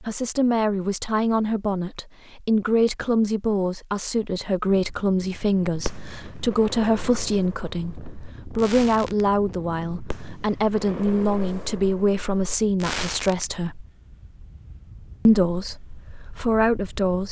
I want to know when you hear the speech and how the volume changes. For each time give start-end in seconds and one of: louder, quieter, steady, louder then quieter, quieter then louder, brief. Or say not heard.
0.0-13.8 steady
15.2-17.2 brief.